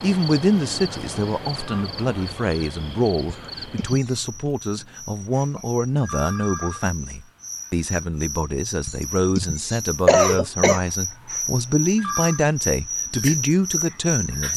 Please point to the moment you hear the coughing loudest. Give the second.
10 s.